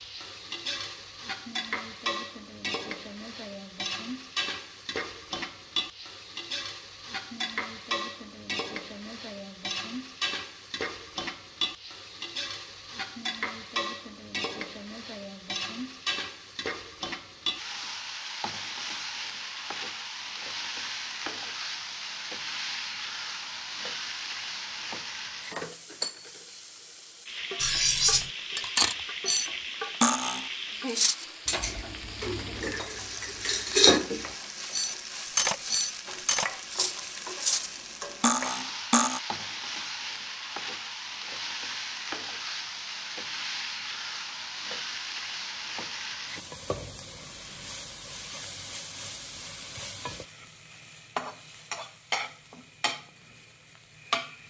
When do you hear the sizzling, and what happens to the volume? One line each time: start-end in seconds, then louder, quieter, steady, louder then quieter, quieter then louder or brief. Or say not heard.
0.0-54.4 steady.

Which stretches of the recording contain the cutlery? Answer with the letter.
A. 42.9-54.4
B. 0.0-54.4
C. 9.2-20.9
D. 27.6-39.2
D.